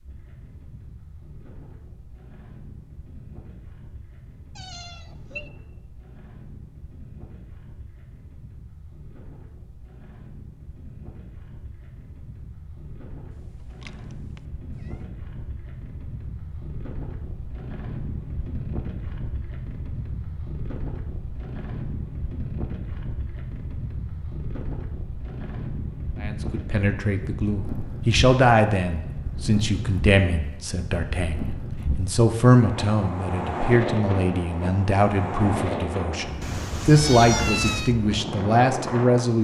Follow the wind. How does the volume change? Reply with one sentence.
The volume of the wind goes up.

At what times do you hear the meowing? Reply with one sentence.
You can hear the meowing from 4.5 to 5.5 s, from 13.3 to 15.0 s and from 36.4 to 38.0 s.